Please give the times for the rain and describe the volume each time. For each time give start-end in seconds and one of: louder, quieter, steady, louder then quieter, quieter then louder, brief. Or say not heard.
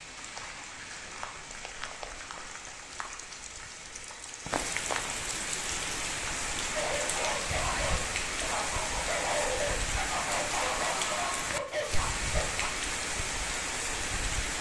0.0-14.5 louder.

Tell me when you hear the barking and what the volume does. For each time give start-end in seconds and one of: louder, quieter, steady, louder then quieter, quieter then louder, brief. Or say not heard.
6.8-12.7 steady.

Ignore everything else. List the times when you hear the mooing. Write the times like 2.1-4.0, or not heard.
not heard.